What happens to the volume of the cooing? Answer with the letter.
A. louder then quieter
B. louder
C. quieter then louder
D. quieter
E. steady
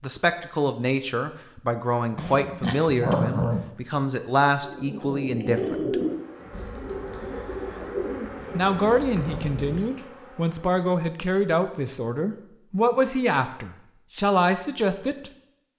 D.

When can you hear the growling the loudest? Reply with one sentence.
The volume of the growling peaks at 3 seconds.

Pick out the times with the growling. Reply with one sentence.
The growling can be heard from 2.1 to 3.6 s and from 8.3 to 9.9 s.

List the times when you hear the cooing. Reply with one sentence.
The cooing can be heard from 4.6 to 9.8 s.